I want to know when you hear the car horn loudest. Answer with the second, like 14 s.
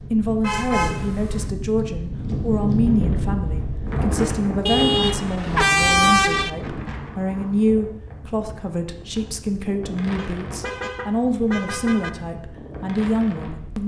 6 s.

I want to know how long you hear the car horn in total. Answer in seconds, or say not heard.
5 s.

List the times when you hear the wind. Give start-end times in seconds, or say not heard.
0.0-13.8.